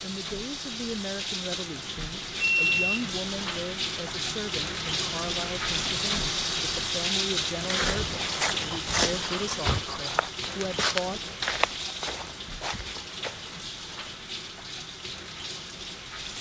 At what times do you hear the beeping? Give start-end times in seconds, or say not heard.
2.4-3.1.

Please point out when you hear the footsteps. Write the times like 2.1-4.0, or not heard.
7.5-13.6.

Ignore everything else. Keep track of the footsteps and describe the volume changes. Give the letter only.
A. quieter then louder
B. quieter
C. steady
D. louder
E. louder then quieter
B.